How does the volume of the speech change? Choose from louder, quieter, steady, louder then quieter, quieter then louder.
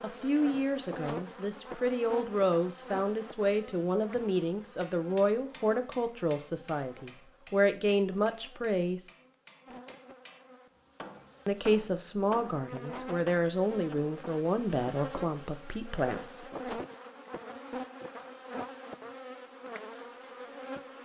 steady.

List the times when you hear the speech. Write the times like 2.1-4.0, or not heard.
0.0-9.1, 11.4-16.9.